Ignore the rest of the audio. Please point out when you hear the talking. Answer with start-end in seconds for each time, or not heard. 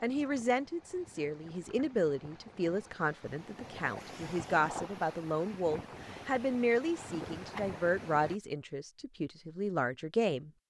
0.0-10.5.